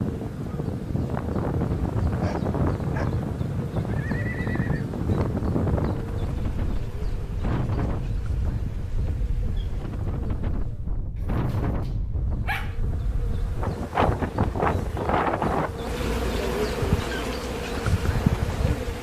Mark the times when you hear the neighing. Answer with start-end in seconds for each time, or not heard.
3.4-4.8.